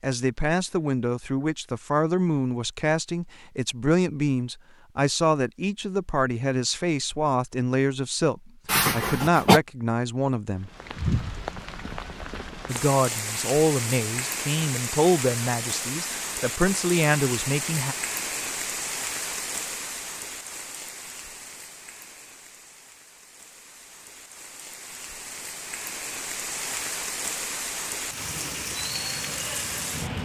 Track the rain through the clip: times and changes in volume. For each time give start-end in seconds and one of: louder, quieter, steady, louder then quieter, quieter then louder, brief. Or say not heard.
10.6-30.1 quieter then louder.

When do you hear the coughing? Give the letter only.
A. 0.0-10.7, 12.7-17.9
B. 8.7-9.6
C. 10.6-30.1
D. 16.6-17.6
B.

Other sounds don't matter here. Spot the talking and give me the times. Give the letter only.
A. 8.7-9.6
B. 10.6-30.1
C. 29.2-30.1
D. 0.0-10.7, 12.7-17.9
D.